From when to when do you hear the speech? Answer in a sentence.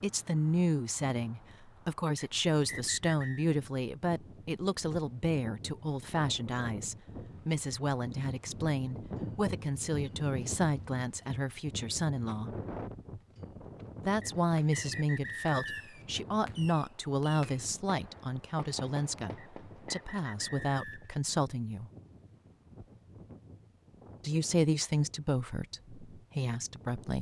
You can hear the speech from 0.0 to 12.5 s, from 14.0 to 21.9 s and from 24.2 to 27.1 s.